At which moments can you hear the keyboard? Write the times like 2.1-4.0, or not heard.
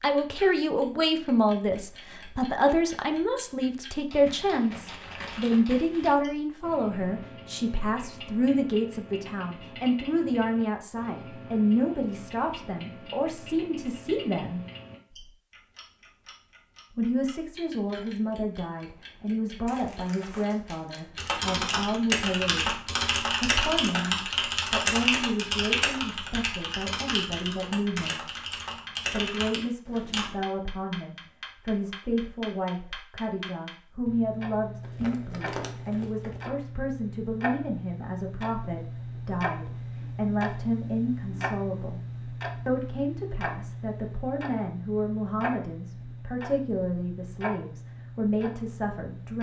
21.1-30.4.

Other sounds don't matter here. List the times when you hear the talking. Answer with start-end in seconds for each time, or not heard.
0.0-14.7, 16.9-22.8, 23.4-28.2, 29.1-42.0, 42.6-49.3.